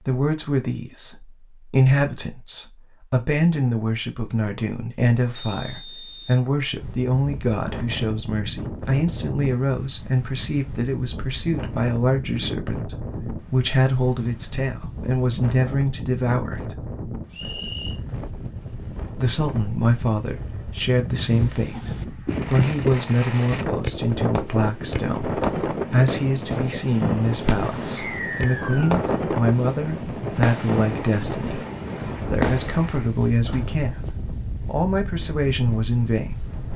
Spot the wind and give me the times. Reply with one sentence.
The wind can be heard from 6.8 to 36.7 s.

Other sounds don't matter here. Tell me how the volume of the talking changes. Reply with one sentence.
The volume of the talking stays about the same.